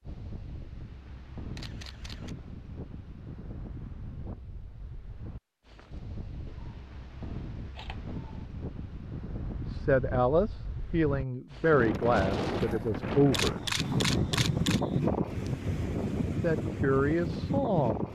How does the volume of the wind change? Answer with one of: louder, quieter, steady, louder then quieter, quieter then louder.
louder.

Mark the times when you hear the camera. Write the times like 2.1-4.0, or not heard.
1.6-2.4, 6.5-8.4, 13.3-14.8.